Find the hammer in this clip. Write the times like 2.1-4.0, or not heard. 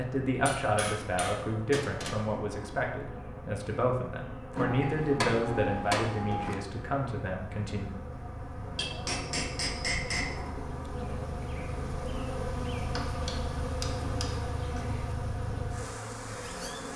0.4-2.2, 4.5-6.5, 8.7-10.3, 12.9-14.8.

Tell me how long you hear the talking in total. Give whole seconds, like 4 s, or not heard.
8 s.